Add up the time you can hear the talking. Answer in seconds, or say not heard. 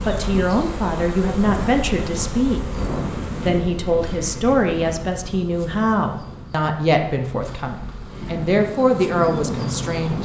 9 s.